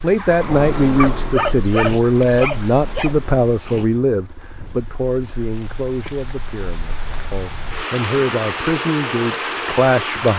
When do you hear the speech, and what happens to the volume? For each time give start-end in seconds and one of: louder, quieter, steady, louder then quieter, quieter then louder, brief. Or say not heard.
0.0-10.3 quieter then louder.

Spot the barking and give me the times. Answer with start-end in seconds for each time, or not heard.
0.9-3.1.